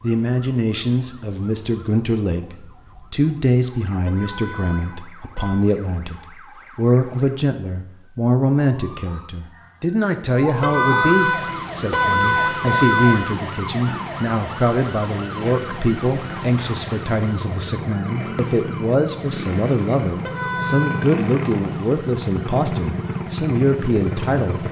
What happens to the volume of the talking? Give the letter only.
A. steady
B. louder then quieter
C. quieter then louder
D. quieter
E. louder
A.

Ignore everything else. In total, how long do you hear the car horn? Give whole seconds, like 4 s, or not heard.
5 s.